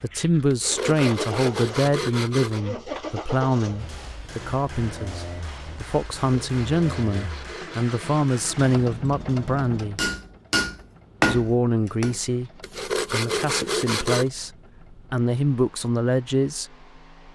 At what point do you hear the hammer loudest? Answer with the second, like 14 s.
11 s.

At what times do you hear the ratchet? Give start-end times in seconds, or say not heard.
not heard.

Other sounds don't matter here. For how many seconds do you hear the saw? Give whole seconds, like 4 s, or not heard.
6 s.